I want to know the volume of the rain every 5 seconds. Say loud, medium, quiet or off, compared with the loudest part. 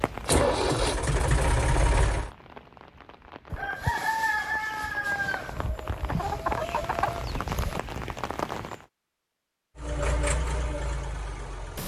medium, loud, off.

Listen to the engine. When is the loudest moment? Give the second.
1 s.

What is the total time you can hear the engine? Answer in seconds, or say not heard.
4 s.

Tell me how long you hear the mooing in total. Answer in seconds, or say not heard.
not heard.